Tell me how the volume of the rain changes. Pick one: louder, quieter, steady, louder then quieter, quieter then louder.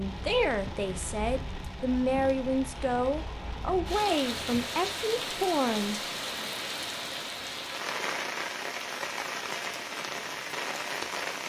louder.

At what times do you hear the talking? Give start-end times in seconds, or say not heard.
0.0-6.5.